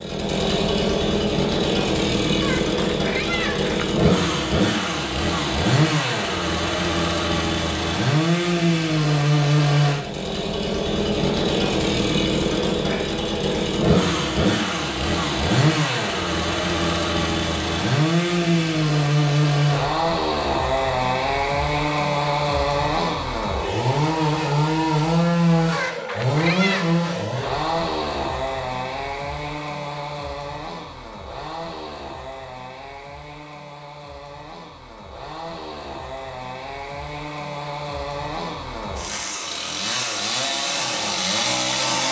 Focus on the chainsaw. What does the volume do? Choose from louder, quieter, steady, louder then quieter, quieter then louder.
quieter.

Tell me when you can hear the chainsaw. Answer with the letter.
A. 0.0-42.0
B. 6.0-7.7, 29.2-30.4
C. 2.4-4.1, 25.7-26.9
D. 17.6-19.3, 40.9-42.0
A.